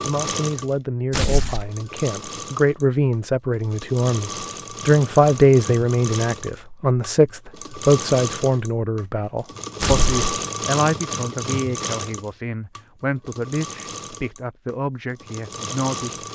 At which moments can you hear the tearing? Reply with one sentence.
The tearing can be heard from 1.1 to 1.7 s and from 9.8 to 10.2 s.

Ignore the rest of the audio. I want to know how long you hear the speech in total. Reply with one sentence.
You can hear the speech for 16 seconds altogether.